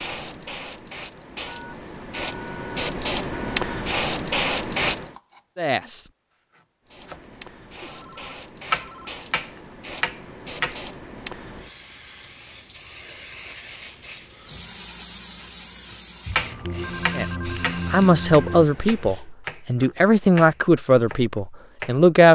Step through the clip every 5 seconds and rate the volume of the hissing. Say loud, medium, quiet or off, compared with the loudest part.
loud, quiet, medium, medium, off.